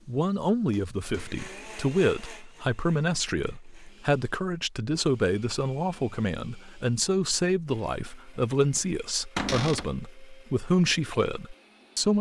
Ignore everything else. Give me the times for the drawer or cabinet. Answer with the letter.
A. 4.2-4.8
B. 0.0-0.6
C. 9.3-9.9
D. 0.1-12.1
C.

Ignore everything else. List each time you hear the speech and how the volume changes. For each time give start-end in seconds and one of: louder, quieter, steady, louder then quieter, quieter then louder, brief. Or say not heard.
0.1-12.1 steady.